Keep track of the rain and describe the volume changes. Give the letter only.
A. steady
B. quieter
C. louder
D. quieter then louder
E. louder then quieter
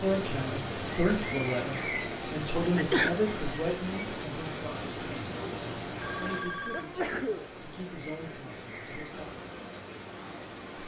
B.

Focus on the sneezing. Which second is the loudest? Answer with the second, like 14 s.
3 s.